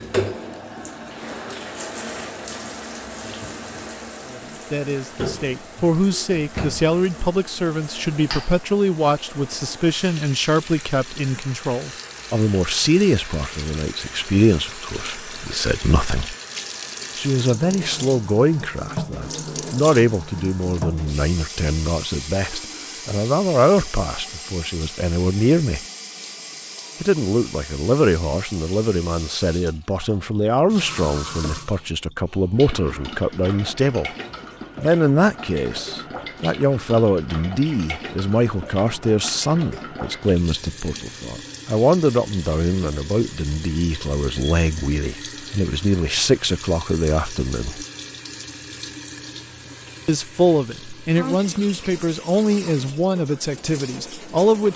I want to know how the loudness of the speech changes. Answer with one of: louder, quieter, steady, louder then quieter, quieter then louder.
steady.